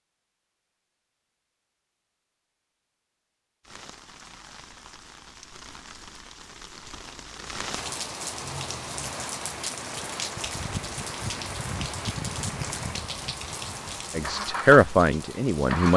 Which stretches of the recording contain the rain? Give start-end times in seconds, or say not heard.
3.6-15.9.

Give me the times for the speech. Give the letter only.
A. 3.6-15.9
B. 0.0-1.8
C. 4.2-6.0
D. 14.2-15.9
D.